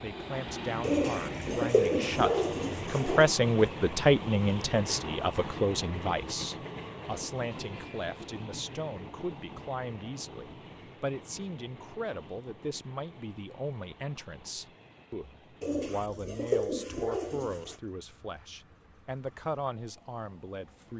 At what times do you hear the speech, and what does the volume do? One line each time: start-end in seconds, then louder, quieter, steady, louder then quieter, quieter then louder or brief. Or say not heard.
0.0-20.9 quieter.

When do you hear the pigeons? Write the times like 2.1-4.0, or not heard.
0.8-3.3, 15.6-17.8.